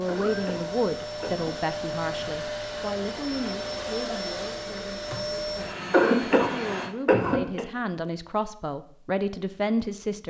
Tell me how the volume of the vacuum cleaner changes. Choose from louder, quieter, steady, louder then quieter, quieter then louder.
steady.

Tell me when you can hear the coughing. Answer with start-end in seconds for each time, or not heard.
0.1-1.6, 5.9-7.7.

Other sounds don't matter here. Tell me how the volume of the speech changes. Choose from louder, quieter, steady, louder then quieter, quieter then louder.
quieter then louder.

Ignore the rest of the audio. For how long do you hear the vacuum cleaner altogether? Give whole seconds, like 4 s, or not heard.
7 s.